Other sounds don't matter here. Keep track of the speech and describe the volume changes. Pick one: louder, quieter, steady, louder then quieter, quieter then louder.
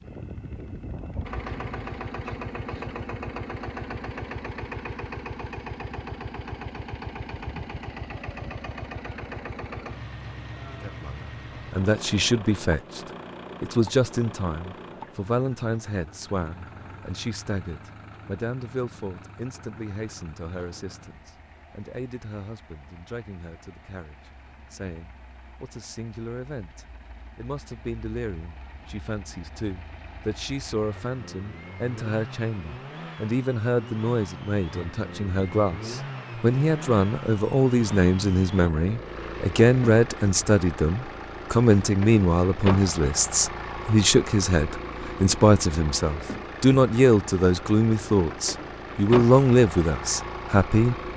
quieter then louder.